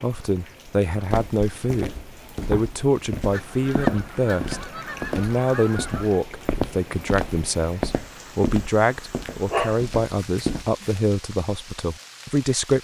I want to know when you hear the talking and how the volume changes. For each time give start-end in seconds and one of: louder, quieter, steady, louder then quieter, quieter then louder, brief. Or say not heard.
0.0-12.7 steady.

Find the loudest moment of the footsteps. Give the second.
4 s.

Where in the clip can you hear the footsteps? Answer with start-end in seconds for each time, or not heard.
1.1-10.7.